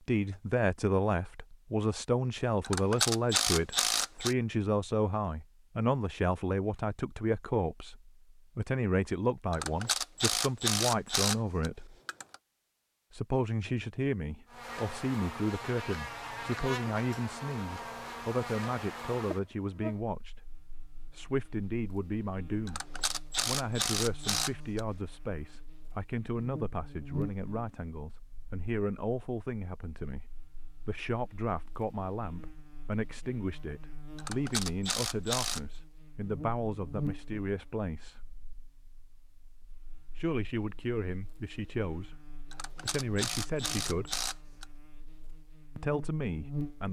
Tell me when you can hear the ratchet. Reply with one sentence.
The ratchet can be heard from 2.6 to 4.3 s, from 9.5 to 12.3 s, from 22.6 to 24.8 s, from 34.1 to 35.6 s and from 42.5 to 44.6 s.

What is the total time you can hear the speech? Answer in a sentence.
The speech can be heard for 41 seconds in total.